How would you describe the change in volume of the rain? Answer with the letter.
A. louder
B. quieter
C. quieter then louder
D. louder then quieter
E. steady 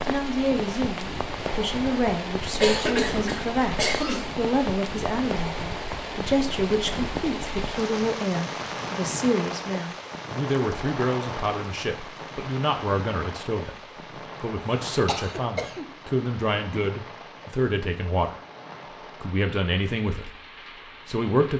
B.